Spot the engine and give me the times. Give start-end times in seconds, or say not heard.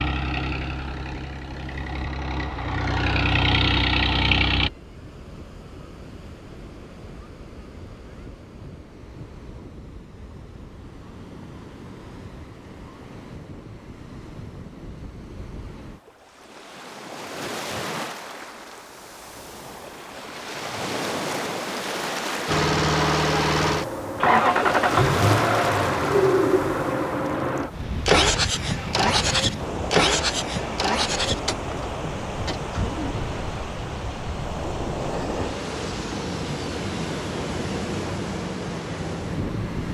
0.0-4.7, 22.4-39.8.